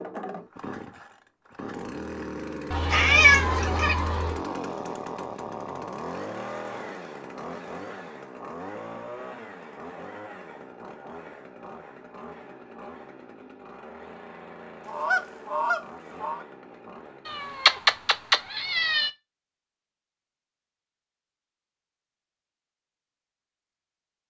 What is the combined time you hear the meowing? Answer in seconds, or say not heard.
3 s.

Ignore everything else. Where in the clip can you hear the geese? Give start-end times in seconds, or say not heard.
2.7-4.4, 14.8-16.4.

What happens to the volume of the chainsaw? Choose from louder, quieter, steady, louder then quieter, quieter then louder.
quieter.